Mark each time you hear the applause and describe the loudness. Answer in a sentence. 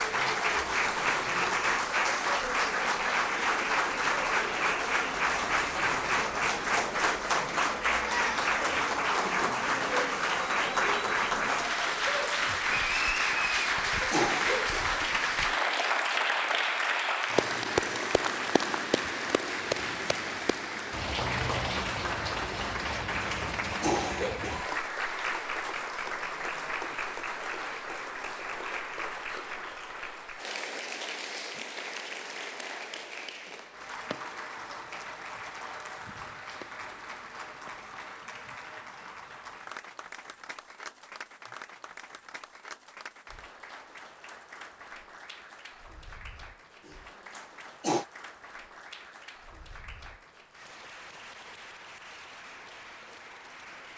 You can hear the applause from 0.0 to 53.9 s, getting quieter.